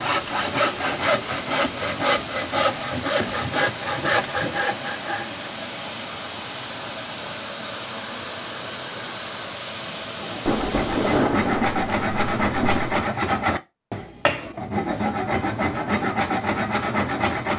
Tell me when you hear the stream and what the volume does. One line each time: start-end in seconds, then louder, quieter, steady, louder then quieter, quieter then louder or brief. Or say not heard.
0.0-11.4 steady.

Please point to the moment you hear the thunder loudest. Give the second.
11 s.